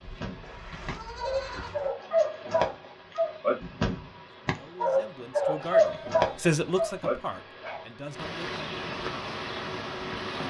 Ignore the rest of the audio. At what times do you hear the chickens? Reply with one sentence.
The chickens can't be heard in this clip.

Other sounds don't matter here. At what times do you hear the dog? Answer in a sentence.
You can hear the dog from 0.0 to 7.8 s.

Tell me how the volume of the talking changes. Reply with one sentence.
The loudness of the talking goes up, then down.